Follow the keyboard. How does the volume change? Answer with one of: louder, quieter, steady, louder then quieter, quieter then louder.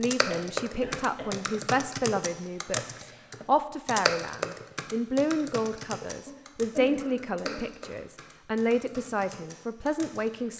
quieter.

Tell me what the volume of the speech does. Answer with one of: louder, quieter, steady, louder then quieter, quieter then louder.
steady.